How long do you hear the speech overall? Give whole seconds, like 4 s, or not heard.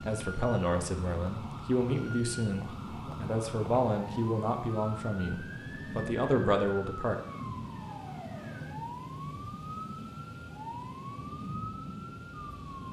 7 s.